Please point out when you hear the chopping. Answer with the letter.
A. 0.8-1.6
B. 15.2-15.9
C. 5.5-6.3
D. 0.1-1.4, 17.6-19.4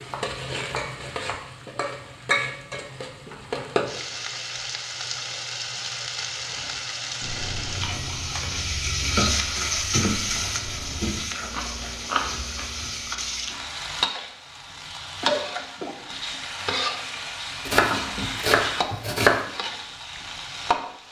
D.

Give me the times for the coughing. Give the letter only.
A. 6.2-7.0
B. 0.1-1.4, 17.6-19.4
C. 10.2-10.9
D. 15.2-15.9
D.